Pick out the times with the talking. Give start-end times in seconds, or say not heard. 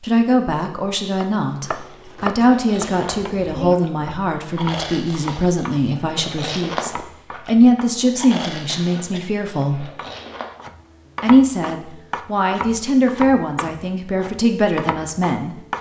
0.0-9.9, 11.2-15.6.